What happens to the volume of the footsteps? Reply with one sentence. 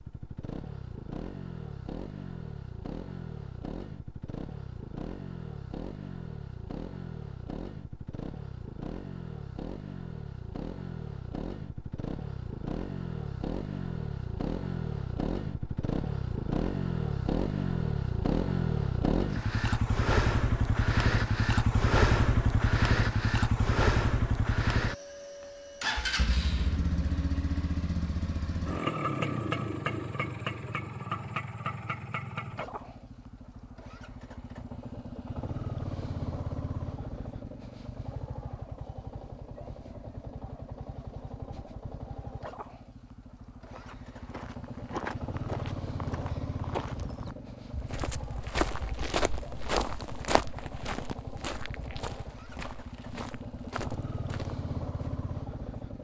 The volume of the footsteps goes up, then down.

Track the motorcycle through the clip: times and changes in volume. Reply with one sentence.
You can hear the motorcycle from 0.0 to 56.0 s, getting louder then quieter.